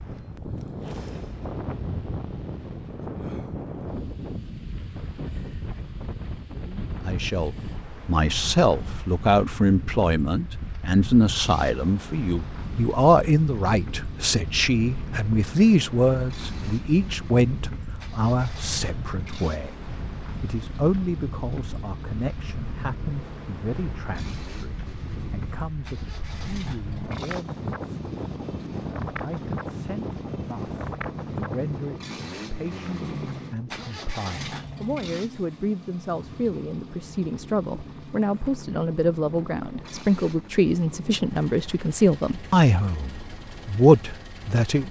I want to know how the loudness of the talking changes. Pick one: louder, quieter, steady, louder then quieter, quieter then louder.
quieter then louder.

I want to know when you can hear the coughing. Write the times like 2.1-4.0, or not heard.
not heard.